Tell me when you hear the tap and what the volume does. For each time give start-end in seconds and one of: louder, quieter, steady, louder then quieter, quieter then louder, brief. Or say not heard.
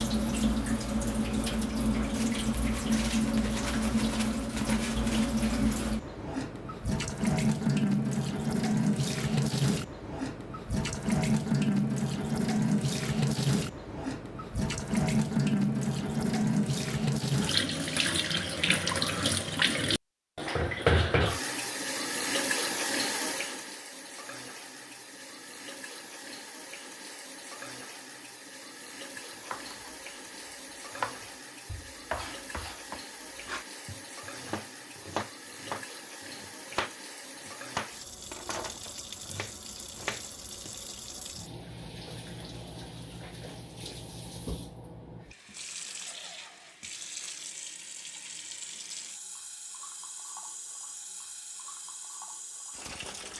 0.0-53.3 quieter.